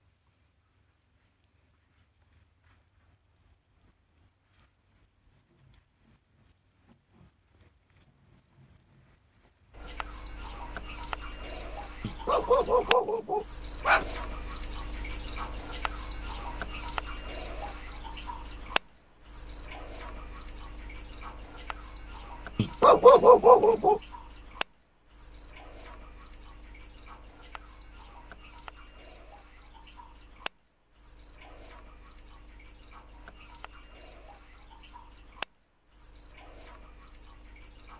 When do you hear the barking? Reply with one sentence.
The barking can be heard from 12.0 to 14.1 s and from 22.6 to 24.0 s.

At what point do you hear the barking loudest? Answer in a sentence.
The volume of the barking peaks at 23 seconds.